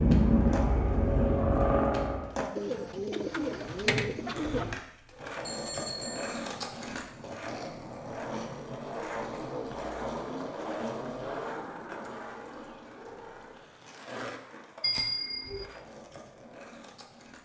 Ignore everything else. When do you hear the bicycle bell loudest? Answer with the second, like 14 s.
15 s.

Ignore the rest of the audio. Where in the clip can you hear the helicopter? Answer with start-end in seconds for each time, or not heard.
0.0-2.4.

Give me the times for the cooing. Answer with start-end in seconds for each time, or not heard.
2.5-4.8.